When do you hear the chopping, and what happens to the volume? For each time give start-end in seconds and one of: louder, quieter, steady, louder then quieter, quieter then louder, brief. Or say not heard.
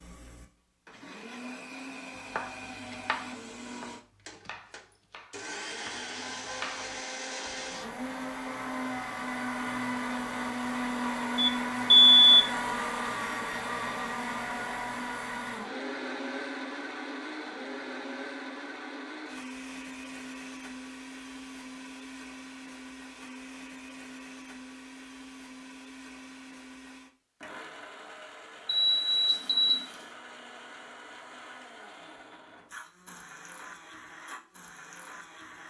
2.1-7.6 quieter then louder.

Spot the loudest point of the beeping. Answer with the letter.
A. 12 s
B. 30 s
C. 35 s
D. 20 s
A.